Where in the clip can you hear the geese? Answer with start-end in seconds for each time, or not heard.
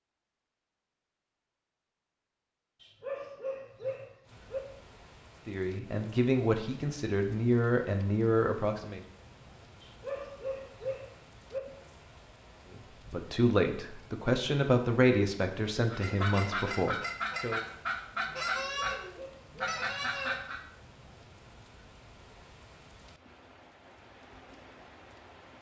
15.9-20.6.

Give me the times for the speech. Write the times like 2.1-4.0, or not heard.
5.5-9.0, 12.7-17.6.